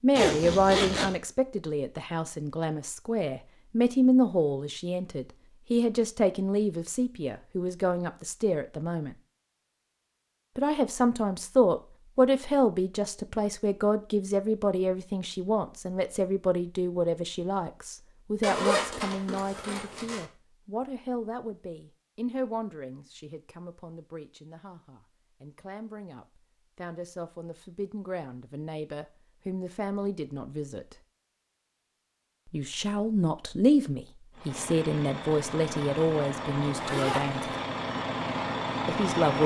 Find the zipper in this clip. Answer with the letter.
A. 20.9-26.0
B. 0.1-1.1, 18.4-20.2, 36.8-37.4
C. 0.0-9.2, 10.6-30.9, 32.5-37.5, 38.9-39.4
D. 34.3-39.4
B.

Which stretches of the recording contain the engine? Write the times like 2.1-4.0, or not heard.
34.3-39.4.